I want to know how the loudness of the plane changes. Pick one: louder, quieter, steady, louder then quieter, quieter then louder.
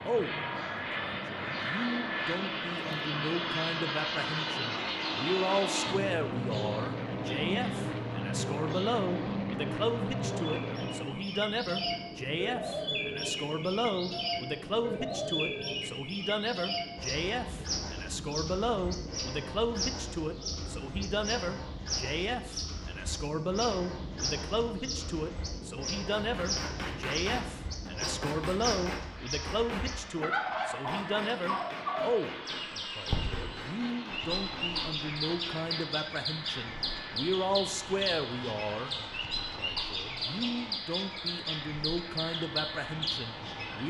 quieter.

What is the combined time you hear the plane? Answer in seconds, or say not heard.
44 s.